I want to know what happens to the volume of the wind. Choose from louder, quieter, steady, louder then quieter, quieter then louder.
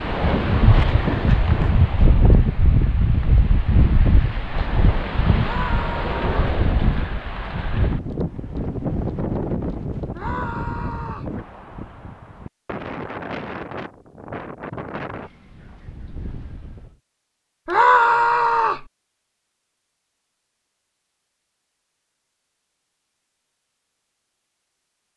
quieter.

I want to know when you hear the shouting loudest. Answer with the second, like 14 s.
18 s.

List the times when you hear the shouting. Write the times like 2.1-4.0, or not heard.
5.3-6.3, 10.2-11.3, 17.6-18.9.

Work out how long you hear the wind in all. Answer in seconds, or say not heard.
17 s.